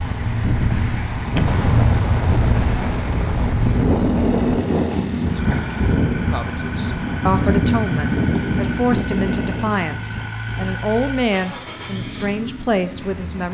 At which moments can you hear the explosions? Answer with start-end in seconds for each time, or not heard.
1.4-4.5.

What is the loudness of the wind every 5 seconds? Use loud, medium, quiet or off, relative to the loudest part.
loud, loud, quiet.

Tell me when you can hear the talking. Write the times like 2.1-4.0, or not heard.
6.3-13.4.